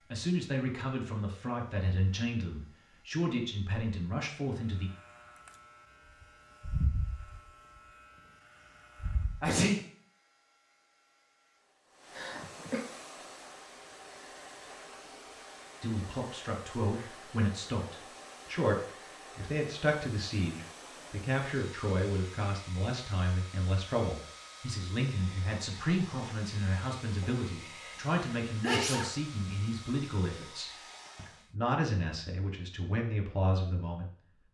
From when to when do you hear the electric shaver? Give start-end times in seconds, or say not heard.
5.2-7.8, 8.9-9.6.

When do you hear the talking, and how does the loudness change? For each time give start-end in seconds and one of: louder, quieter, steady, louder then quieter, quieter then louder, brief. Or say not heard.
0.0-4.9 steady
15.8-34.4 steady.